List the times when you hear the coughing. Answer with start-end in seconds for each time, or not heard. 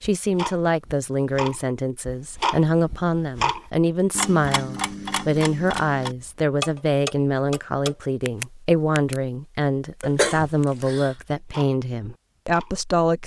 10.0-11.1.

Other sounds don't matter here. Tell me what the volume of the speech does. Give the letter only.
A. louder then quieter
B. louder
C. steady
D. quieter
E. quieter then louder
C.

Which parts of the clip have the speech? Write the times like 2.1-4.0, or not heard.
0.0-13.2.